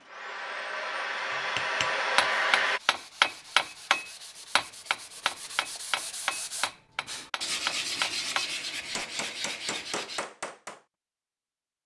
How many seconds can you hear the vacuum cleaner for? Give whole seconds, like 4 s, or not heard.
3 s.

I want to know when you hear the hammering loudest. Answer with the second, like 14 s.
3 s.